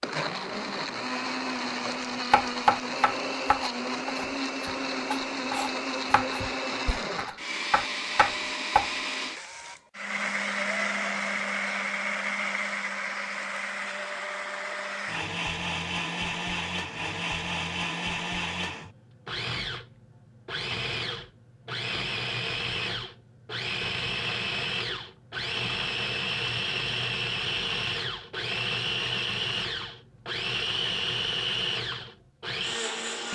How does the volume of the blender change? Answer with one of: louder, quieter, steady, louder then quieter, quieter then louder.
steady.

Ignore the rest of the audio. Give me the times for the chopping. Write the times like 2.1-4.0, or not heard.
2.3-8.9.